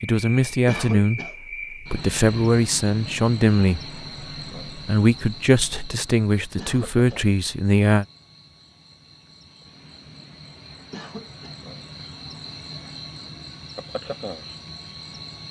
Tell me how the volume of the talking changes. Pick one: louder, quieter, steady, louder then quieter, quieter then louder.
steady.